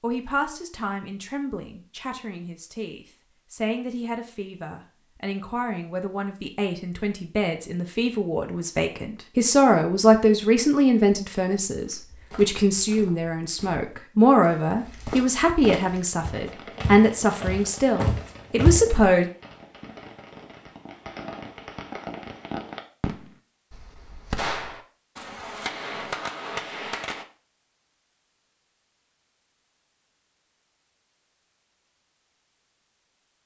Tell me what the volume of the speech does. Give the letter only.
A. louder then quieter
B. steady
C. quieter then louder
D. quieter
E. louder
E.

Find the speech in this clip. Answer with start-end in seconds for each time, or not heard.
0.0-19.2.